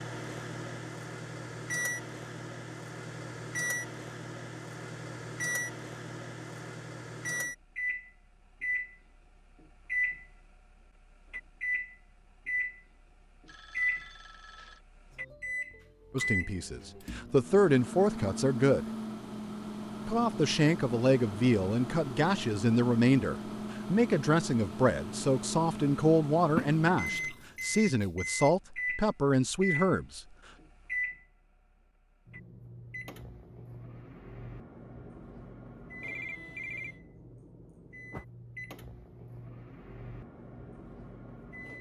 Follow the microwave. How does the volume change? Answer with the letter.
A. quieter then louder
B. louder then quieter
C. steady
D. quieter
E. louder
D.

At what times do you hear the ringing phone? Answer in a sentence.
The ringing phone can be heard from 13.4 to 14.8 s and from 36.0 to 37.0 s.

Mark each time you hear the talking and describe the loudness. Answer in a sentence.
You can hear the talking briefly from 16.1 to 18.9 s; and from 20.1 to 30.2 s, at a steady volume.